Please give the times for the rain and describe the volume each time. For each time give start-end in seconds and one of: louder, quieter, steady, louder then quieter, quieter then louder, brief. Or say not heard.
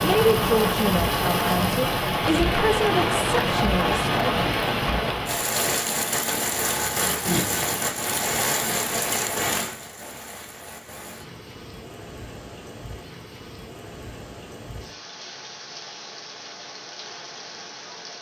0.0-18.1 quieter.